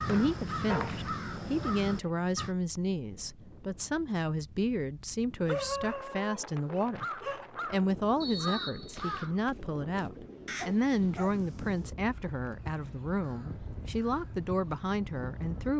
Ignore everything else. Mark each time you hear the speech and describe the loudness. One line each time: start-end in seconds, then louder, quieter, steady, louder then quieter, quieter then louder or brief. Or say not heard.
0.1-15.7 steady.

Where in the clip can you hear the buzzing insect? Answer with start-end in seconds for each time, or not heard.
not heard.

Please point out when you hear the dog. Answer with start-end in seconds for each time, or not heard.
0.7-2.1, 5.5-7.5, 10.6-11.4.